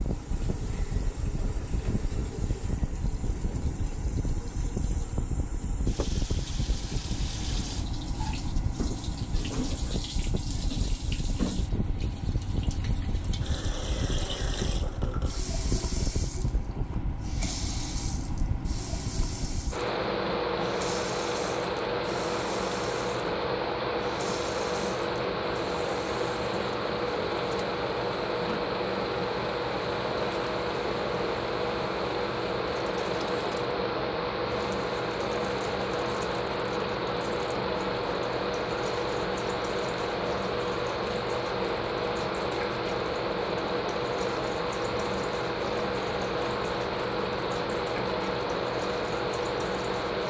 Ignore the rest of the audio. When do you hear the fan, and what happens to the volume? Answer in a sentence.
You can hear the fan from 0.0 to 50.2 s, getting louder.